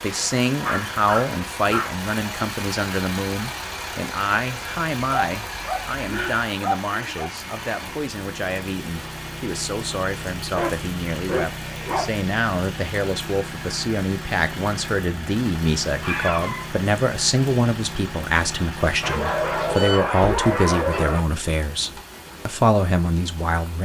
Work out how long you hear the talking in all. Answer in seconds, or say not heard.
24 s.